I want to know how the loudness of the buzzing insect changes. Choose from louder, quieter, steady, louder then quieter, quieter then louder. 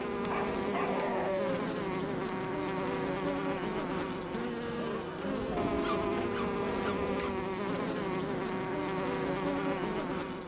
steady.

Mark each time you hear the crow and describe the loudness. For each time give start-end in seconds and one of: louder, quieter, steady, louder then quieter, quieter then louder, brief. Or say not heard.
not heard.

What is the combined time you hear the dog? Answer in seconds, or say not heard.
3 s.